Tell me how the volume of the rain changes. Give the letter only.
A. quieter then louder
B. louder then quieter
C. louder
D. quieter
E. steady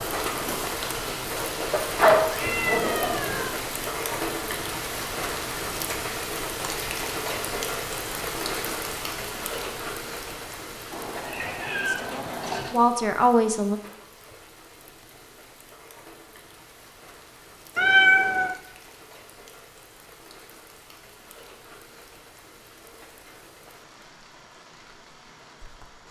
D.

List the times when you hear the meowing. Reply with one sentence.
You can hear the meowing from 1.7 to 3.5 s, from 10.9 to 12.8 s and from 17.8 to 18.6 s.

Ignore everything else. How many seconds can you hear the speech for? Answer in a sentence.
The speech can be heard for 2 seconds in total.